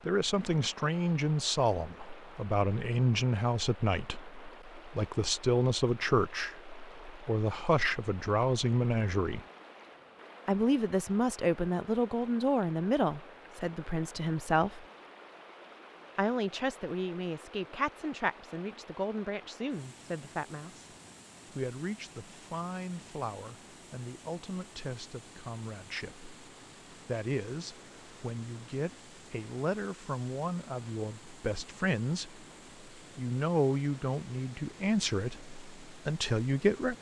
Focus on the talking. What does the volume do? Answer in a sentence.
The loudness of the talking goes down, then up.